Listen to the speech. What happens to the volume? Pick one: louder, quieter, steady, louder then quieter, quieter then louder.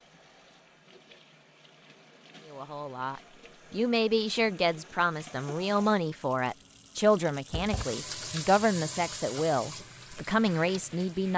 steady.